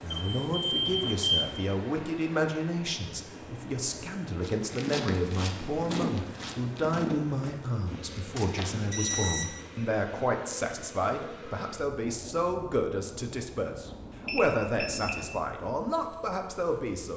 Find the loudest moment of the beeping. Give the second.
1 s.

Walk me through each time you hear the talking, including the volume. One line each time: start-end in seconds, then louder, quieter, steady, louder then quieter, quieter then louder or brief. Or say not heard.
0.0-17.1 steady.